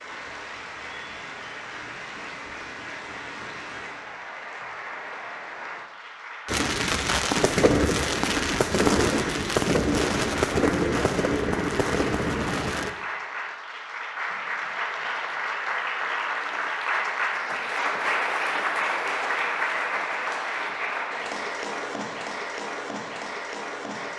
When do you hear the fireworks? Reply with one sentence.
You can hear the fireworks from 6.5 to 12.9 s.